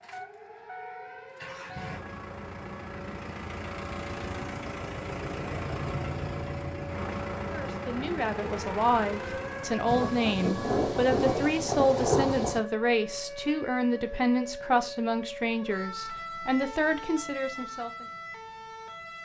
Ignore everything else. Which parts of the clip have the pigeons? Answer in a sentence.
The pigeons can't be heard in this clip.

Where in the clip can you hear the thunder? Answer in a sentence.
You can hear the thunder from 9.8 to 12.6 s.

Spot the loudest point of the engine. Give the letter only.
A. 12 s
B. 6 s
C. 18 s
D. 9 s
B.